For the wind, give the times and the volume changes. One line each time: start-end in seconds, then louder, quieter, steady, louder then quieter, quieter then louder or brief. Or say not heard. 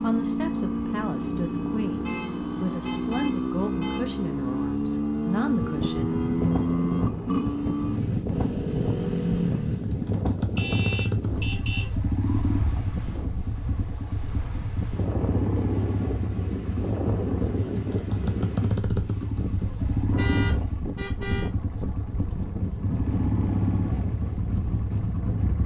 5.5-25.6 steady.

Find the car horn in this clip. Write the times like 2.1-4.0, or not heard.
2.0-4.0, 10.6-11.9, 20.1-21.5.